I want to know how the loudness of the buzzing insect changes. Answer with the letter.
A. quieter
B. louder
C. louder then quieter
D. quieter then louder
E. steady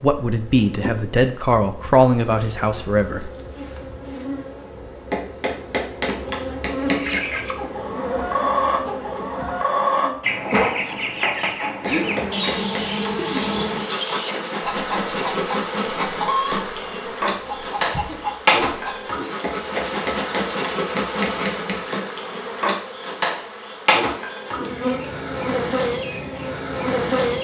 B.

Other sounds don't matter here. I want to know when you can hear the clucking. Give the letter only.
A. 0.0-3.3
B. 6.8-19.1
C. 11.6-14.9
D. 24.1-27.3
B.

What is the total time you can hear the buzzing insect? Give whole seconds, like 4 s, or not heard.
27 s.